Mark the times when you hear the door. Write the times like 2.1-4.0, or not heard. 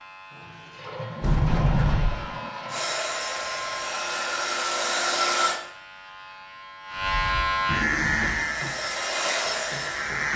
1.2-2.2, 7.0-8.3.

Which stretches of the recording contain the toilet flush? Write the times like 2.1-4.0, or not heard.
0.3-3.0, 7.7-8.6.